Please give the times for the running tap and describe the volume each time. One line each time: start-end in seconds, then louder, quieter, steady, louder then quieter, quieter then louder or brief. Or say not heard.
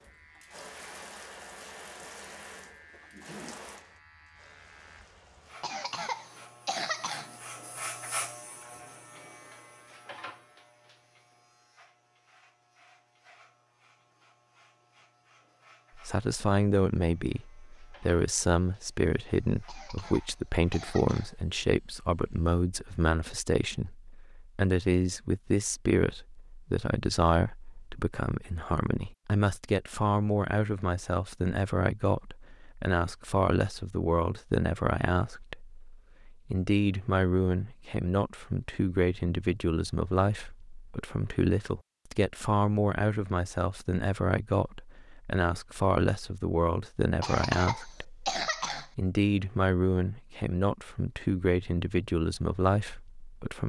0.0-7.6 quieter.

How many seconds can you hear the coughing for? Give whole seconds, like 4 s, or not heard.
5 s.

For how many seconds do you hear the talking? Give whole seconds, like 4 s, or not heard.
38 s.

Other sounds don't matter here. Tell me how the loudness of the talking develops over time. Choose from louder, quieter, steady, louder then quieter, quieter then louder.
steady.